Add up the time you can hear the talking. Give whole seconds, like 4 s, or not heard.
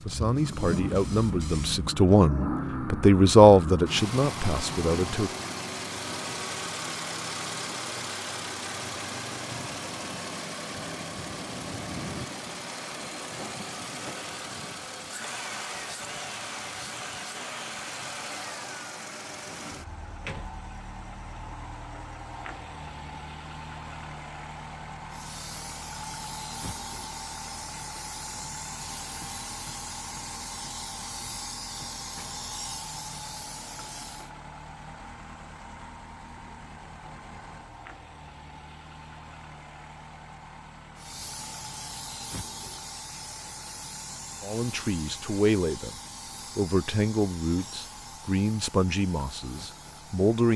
11 s.